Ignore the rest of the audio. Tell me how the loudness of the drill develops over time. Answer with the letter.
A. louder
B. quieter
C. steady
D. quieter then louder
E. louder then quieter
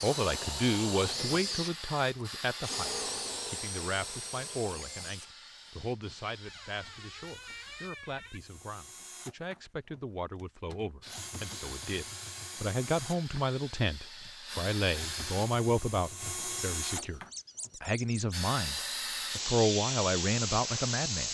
D.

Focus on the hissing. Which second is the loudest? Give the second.
20 s.